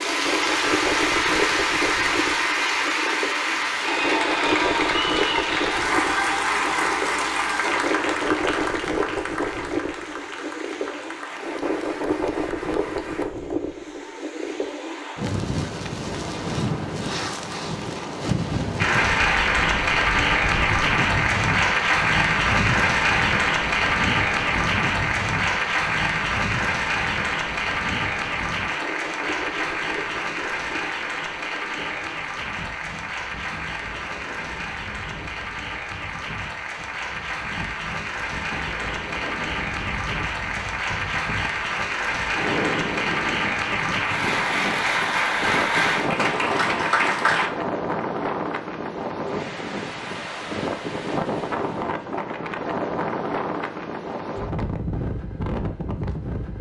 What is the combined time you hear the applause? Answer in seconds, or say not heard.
42 s.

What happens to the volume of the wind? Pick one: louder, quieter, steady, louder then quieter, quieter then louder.
quieter then louder.